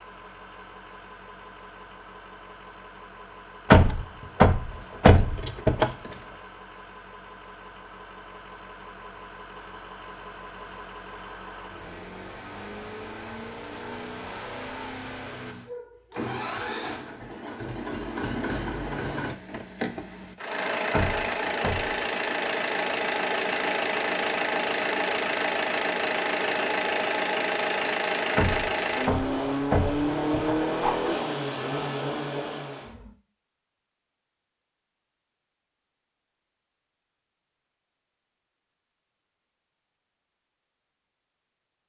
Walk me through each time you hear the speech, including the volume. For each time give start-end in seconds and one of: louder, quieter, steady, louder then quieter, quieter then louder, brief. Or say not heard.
not heard.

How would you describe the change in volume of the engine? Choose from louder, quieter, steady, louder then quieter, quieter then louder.
louder.